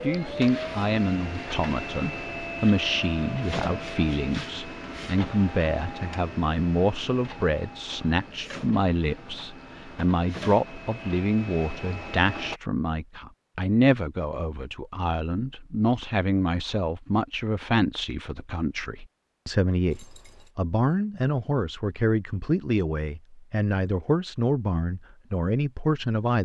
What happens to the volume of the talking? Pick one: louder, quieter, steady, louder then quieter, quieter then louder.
steady.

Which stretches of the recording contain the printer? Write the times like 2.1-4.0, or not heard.
0.0-12.6.